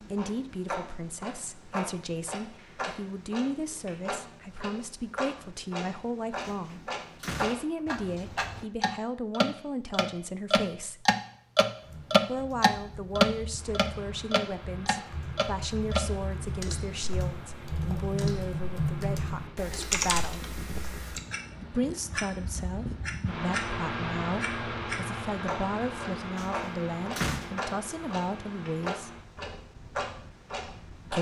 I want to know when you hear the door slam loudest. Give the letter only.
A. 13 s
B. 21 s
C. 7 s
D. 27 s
D.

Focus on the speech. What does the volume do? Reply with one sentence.
The volume of the speech stays about the same.